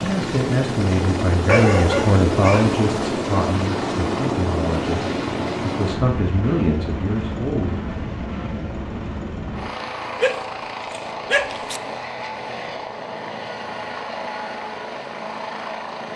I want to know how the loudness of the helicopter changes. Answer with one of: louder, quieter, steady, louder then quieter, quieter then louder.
quieter.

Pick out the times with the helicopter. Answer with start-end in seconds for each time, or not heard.
0.0-16.1.